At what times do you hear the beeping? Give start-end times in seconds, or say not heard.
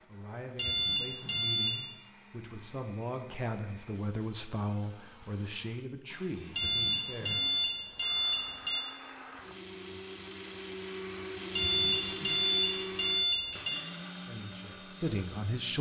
0.6-1.8, 6.5-8.8, 11.6-13.8.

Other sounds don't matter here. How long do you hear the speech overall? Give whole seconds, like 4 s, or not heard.
9 s.